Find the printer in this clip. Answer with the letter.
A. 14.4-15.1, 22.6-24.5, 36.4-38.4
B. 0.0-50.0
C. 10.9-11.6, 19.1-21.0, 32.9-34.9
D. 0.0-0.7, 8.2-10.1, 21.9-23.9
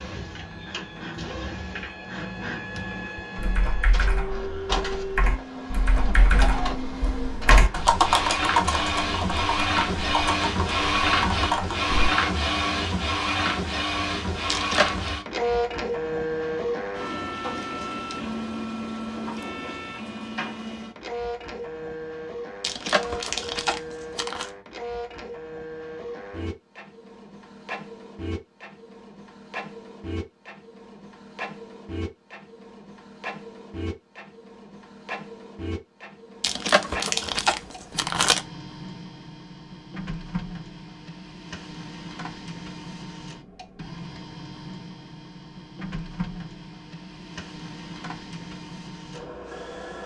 B.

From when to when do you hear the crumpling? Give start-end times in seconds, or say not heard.
14.4-15.1, 22.6-24.5, 36.4-38.4.